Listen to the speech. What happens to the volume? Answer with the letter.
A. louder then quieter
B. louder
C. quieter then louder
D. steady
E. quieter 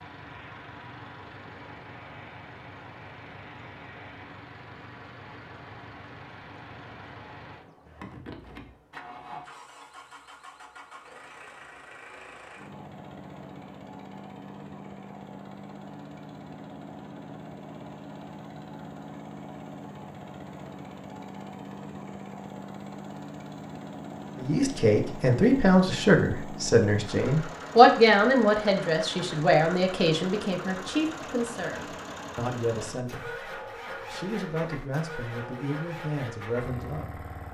E.